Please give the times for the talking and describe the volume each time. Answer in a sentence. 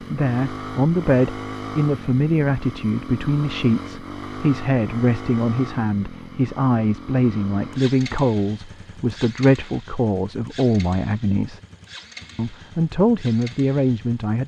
The talking can be heard from 0.0 to 11.6 s, at a steady volume; and briefly from 12.3 to 14.4 s.